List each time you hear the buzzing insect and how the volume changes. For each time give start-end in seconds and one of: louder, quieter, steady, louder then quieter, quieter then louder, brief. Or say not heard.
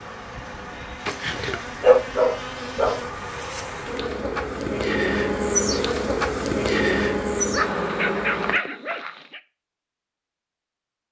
0.0-8.6 louder.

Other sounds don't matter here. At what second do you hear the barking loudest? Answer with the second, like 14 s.
2 s.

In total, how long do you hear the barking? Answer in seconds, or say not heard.
4 s.